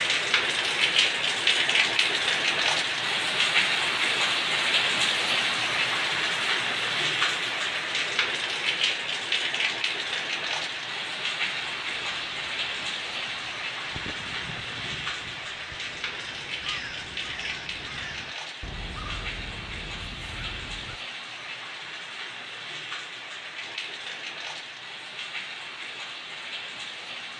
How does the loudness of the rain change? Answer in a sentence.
The volume of the rain goes down.